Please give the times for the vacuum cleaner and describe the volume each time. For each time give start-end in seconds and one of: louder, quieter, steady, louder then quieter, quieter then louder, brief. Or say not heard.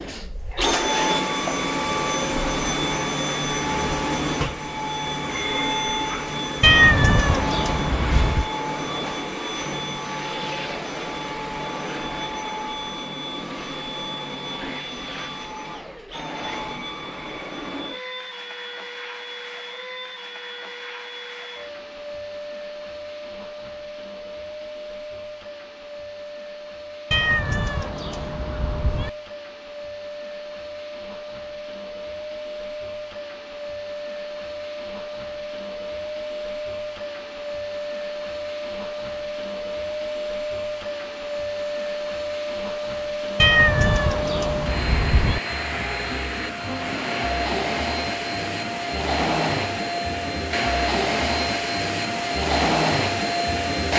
0.0-53.9 quieter then louder.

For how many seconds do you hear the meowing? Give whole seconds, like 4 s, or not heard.
6 s.